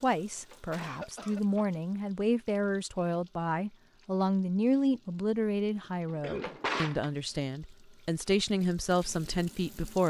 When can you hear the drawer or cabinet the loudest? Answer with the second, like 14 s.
7 s.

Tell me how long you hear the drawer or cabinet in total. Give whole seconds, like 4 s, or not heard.
2 s.